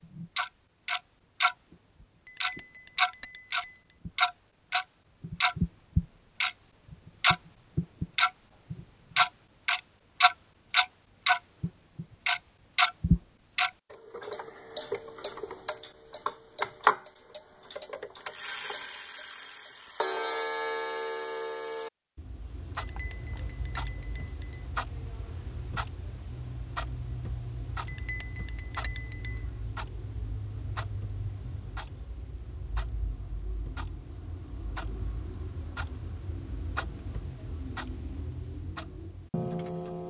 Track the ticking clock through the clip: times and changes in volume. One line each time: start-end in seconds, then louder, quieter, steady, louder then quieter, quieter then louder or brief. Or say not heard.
0.0-40.0 quieter.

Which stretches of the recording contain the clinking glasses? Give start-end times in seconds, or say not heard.
2.2-4.0, 22.8-24.6, 27.9-29.4.